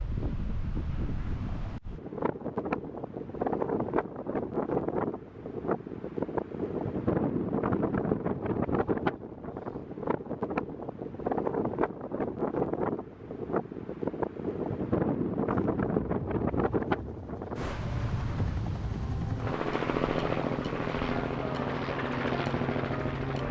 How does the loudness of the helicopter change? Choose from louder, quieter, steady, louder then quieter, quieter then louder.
louder.